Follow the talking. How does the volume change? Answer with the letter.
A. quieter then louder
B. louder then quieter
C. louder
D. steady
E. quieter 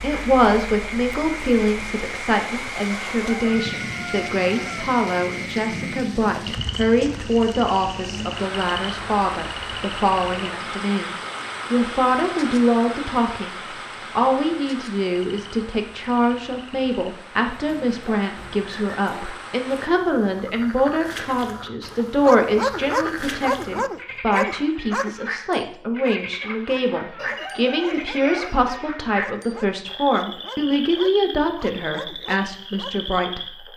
D.